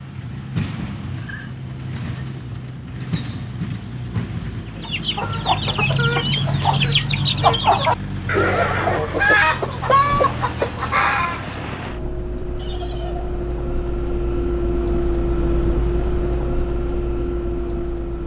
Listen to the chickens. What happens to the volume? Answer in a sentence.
The volume of the chickens stays about the same.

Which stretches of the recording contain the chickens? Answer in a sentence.
You can hear the chickens from 4.8 to 11.4 s.